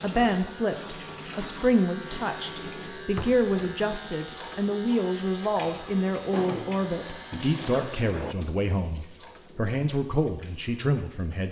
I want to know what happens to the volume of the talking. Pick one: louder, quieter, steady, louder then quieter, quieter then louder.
steady.